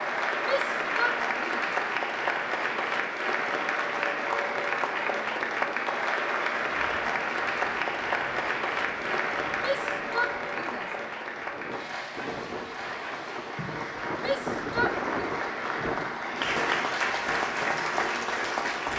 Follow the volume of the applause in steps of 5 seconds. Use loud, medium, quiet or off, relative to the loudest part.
loud, loud, medium, loud.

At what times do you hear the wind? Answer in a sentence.
The wind can be heard from 6.7 to 18.9 s.